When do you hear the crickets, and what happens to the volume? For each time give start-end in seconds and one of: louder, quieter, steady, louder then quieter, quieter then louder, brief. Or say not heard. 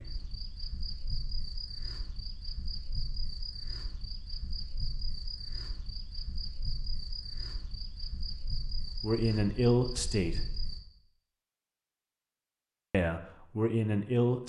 0.0-10.8 steady.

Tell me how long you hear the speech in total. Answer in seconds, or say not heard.
3 s.